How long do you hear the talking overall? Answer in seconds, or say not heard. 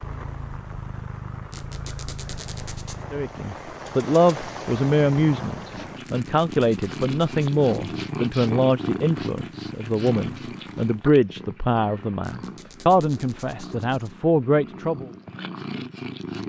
12 s.